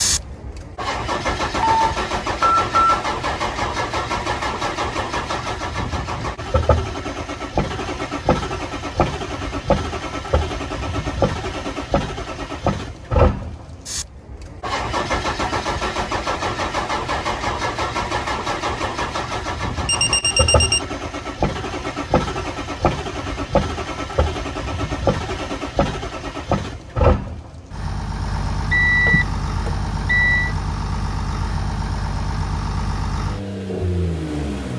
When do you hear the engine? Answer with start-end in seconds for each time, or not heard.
0.0-34.7.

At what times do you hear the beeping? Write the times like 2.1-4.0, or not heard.
1.6-3.0, 19.9-20.8, 28.7-30.6.